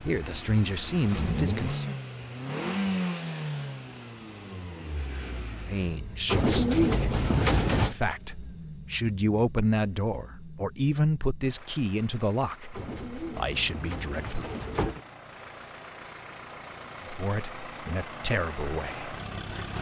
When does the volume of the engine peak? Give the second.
3 s.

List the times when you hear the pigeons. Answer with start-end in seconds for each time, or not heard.
6.2-8.0, 12.7-15.0.